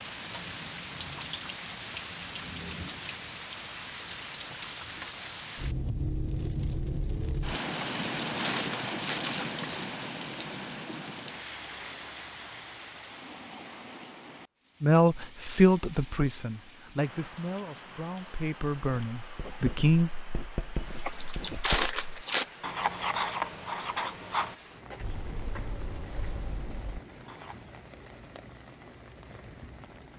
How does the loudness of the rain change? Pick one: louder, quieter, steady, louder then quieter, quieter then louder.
quieter.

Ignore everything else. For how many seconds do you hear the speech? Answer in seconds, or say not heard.
5 s.